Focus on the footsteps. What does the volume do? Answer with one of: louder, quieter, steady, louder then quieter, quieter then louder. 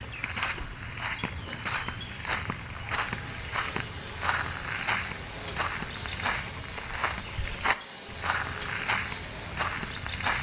steady.